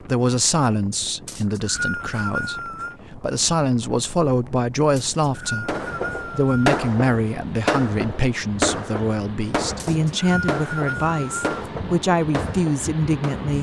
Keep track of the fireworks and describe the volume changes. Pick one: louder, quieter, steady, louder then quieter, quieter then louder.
quieter.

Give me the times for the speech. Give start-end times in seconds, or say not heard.
0.0-13.5.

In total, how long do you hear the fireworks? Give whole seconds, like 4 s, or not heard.
8 s.